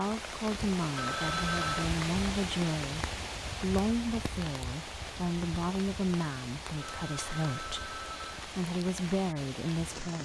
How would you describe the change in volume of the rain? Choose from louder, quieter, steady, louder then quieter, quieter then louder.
quieter.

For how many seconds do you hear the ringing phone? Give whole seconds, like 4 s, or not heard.
3 s.